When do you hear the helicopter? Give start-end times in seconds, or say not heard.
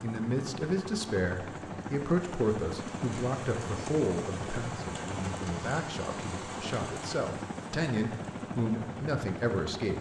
0.0-9.9.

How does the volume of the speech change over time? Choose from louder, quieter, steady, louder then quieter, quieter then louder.
quieter then louder.